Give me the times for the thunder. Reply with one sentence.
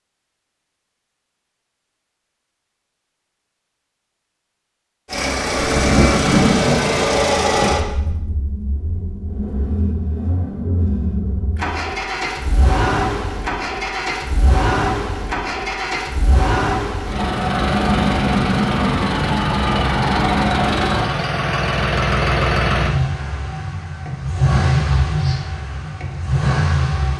The thunder can be heard from 5.5 to 8.2 s.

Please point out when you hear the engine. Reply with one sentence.
The engine can be heard from 5.0 to 27.1 s.